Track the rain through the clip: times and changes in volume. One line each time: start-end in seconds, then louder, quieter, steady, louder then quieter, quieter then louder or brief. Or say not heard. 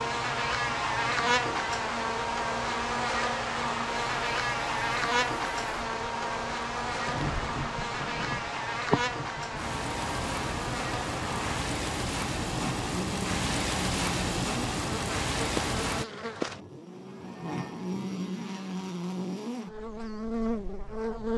0.0-16.1 louder.